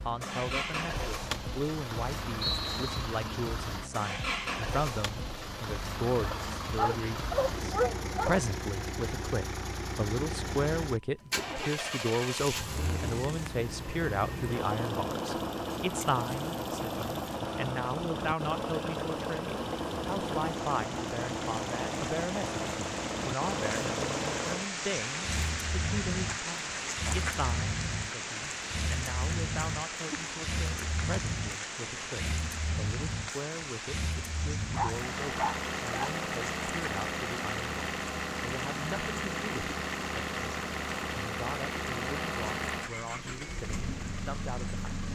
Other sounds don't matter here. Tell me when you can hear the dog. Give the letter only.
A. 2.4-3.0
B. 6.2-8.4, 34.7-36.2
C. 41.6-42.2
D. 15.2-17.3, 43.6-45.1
B.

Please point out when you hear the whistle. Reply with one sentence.
You can hear the whistle from 2.4 to 3.0 s.